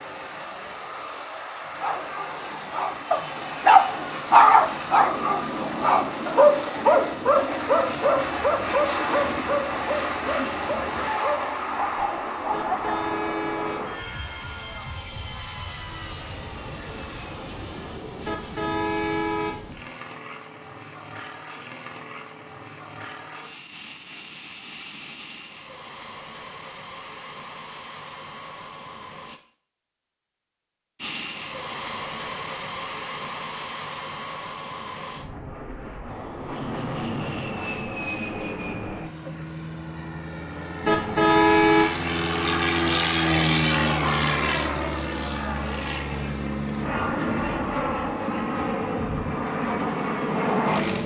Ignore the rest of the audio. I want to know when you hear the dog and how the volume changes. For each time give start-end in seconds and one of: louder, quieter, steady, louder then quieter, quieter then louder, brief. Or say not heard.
1.8-12.9 quieter.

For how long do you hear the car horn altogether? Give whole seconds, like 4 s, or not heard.
4 s.